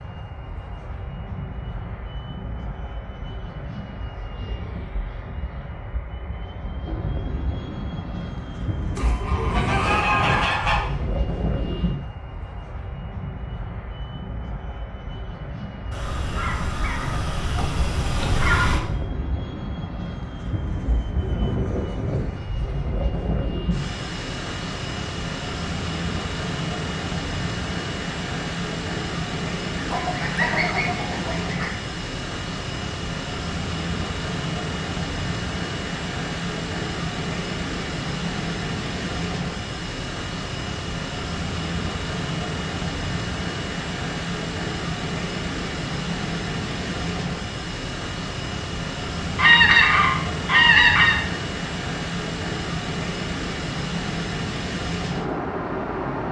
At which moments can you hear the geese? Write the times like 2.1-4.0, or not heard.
8.9-10.8, 15.9-18.8, 29.8-31.7, 49.4-51.2.